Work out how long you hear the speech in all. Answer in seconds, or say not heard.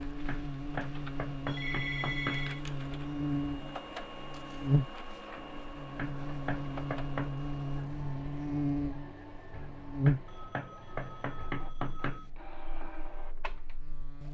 not heard.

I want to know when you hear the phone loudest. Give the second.
2 s.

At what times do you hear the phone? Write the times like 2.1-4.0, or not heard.
1.4-2.6, 10.2-12.3.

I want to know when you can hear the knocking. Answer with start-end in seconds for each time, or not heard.
0.2-2.5, 6.0-7.3, 10.1-12.3.